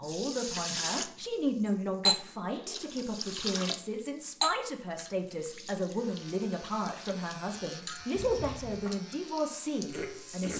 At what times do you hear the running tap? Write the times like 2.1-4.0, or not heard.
0.0-10.5.